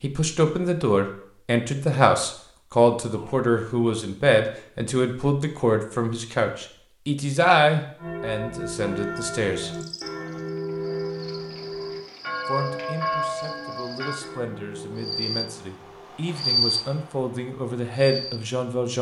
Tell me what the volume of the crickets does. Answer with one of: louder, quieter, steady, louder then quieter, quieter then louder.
louder.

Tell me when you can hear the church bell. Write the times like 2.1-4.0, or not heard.
8.0-16.1.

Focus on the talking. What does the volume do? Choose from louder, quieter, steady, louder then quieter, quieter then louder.
quieter then louder.